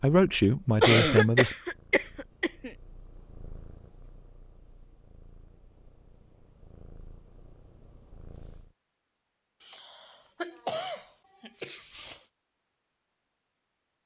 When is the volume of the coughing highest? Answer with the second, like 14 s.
1 s.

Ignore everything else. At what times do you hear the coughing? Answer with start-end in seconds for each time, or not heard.
0.8-2.7, 9.6-12.2.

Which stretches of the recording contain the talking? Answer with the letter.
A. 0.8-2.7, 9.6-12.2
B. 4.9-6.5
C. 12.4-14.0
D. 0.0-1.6
D.